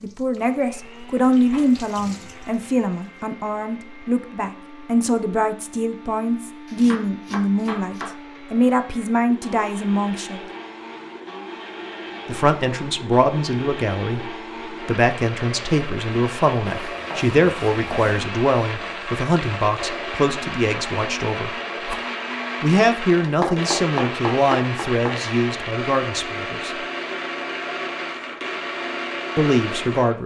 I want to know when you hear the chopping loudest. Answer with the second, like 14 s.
24 s.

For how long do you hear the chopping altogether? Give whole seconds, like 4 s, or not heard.
5 s.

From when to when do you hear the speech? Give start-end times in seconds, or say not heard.
0.0-10.4, 12.2-21.5, 22.6-26.8, 29.4-30.2.